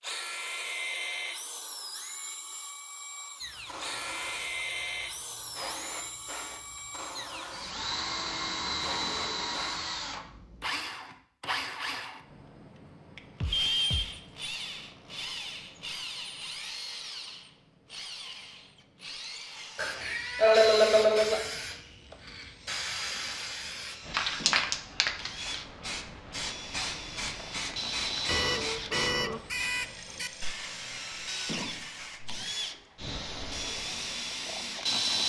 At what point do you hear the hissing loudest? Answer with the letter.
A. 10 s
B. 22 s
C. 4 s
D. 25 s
D.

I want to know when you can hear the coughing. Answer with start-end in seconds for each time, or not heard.
19.8-21.4.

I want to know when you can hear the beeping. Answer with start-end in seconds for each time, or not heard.
13.4-14.2, 28.2-30.3.